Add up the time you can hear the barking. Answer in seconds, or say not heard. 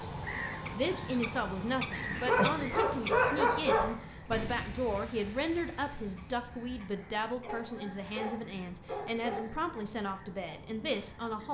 4 s.